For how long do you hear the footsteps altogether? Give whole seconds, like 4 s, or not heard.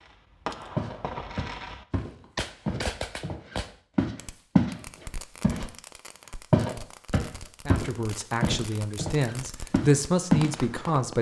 9 s.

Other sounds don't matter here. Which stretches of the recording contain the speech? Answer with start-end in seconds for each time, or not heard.
7.7-11.1.